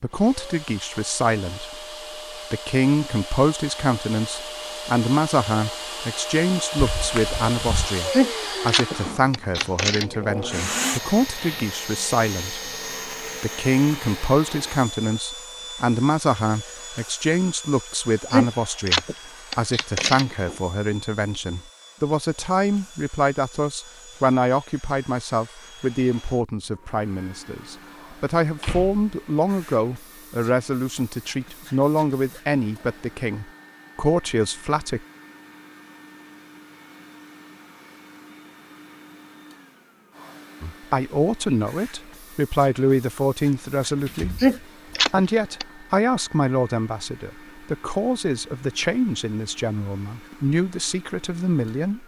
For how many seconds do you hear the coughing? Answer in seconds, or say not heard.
6 s.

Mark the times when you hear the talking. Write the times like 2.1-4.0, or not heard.
0.0-1.8, 2.5-12.7, 13.4-35.0, 40.6-44.4, 45.1-52.0.